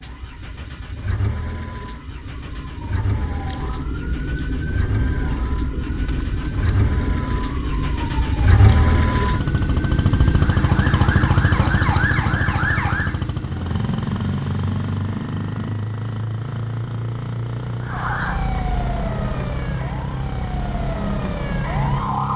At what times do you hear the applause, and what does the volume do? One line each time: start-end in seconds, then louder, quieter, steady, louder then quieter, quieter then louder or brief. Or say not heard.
not heard.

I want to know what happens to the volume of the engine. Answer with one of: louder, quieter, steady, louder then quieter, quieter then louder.
louder then quieter.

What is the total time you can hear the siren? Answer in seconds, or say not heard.
18 s.